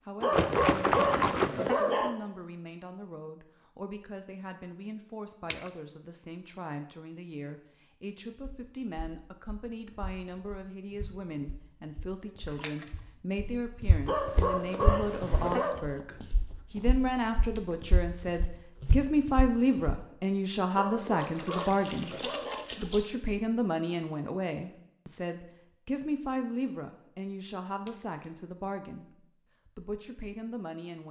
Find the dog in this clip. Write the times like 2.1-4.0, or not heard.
0.2-2.1, 14.1-15.8, 20.8-22.6.